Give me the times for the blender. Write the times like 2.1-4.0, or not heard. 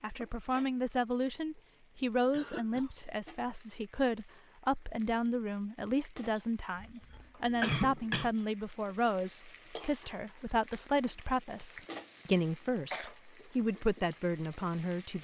not heard.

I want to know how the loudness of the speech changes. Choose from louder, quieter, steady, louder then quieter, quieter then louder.
steady.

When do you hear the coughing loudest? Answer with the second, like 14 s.
8 s.